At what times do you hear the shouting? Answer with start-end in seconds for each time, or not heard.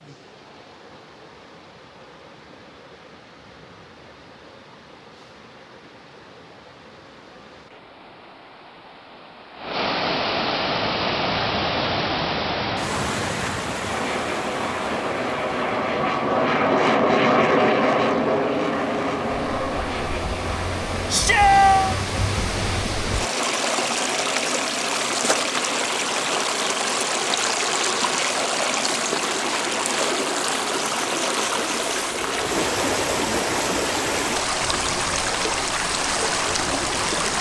21.1-21.9.